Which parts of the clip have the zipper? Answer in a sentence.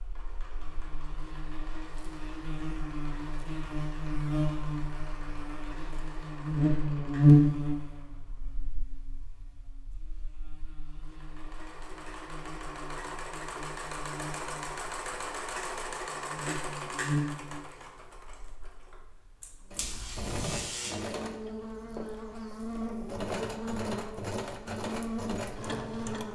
The zipper can be heard from 19.8 to 20.7 s.